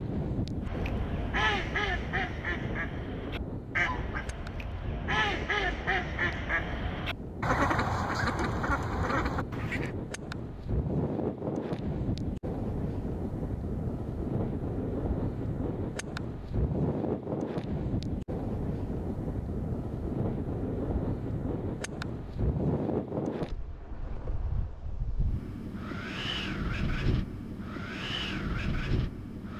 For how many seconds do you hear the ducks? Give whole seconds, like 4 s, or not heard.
9 s.